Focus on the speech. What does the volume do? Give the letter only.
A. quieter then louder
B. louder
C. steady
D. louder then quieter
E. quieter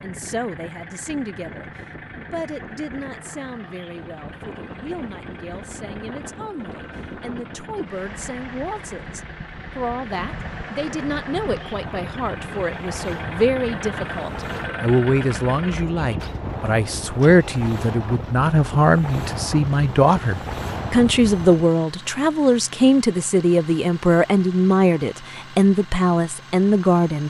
B.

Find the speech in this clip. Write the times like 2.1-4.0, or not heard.
0.0-27.2.